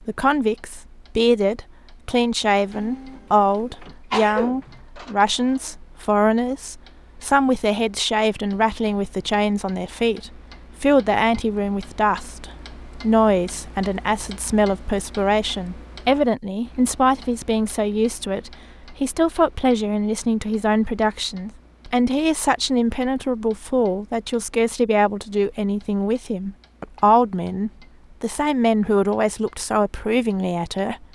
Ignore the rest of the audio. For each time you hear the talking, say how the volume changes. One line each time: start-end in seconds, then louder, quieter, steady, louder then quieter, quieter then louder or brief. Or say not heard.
0.1-31.0 steady.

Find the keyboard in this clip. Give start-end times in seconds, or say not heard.
not heard.